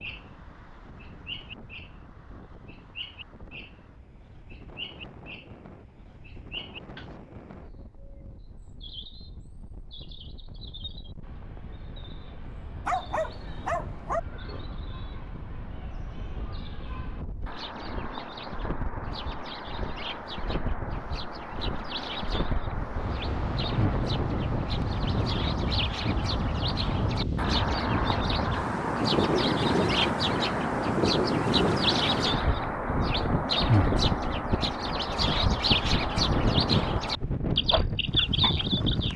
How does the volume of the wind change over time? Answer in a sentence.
The loudness of the wind goes up.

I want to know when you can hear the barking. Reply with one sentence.
The barking can be heard from 12.8 to 14.2 s.